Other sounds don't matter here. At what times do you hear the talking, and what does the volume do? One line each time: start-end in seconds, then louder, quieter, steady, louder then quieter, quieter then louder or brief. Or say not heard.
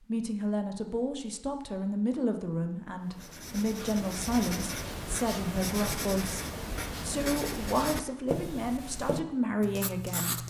0.1-10.4 steady.